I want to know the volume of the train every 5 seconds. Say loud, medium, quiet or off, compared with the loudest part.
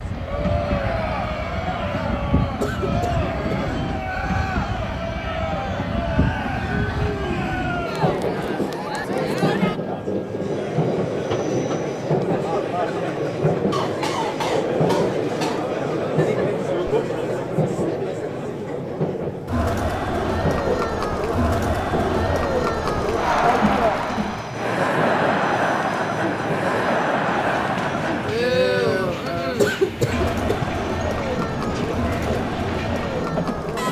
loud, loud, loud, loud, medium, medium, loud.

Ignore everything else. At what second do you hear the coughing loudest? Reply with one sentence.
The loudest moment of the coughing is at 30 seconds.